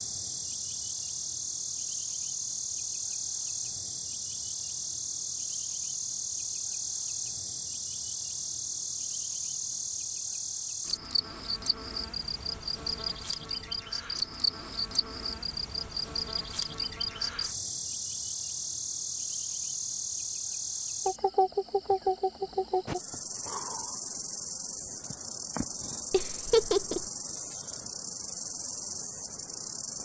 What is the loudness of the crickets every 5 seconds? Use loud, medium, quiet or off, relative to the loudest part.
loud, loud, loud, loud, loud, medium.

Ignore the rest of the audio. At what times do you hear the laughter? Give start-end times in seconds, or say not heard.
26.1-27.1.